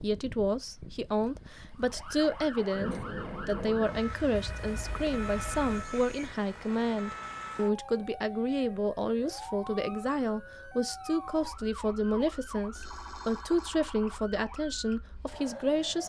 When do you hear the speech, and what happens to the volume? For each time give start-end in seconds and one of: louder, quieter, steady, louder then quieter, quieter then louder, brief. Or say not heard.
0.0-16.0 steady.